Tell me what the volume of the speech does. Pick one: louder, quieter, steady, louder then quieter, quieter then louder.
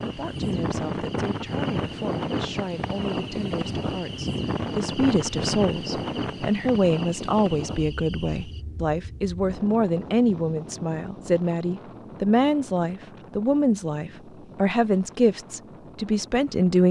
louder.